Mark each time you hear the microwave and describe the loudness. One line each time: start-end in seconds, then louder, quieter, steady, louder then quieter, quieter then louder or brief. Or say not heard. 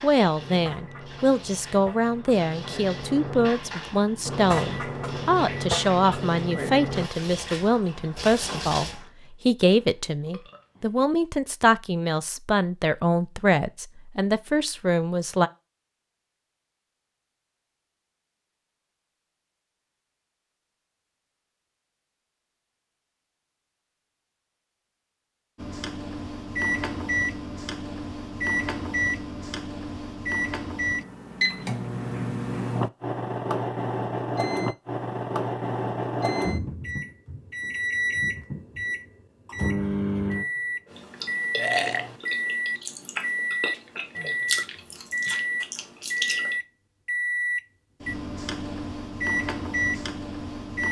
0.2-7.1 louder
25.6-50.8 steady.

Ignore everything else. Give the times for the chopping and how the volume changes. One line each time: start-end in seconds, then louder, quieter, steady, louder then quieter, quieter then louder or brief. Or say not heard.
not heard.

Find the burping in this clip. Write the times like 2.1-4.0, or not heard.
9.2-11.2, 41.5-42.2.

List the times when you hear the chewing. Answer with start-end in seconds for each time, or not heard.
40.9-46.5.